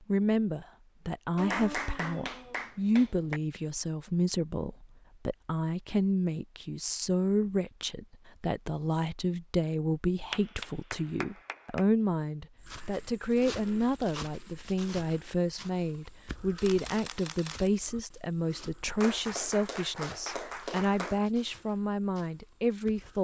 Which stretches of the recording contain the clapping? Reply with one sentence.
You can hear the clapping from 1.4 to 3.4 s, from 10.3 to 11.8 s and from 19.0 to 21.2 s.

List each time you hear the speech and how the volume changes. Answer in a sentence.
You can hear the speech from 0.1 to 23.2 s, at a steady volume.